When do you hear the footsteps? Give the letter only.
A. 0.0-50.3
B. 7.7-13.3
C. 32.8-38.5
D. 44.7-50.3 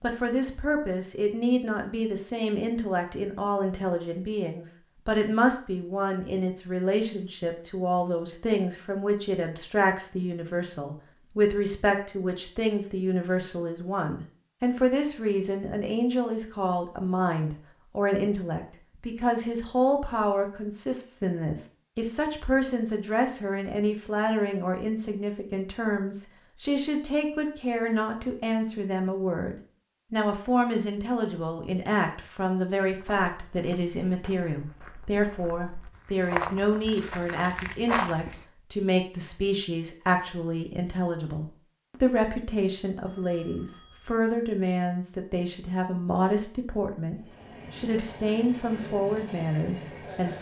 C.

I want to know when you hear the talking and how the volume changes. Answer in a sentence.
You can hear the talking from 0.0 to 50.3 s, at a steady volume.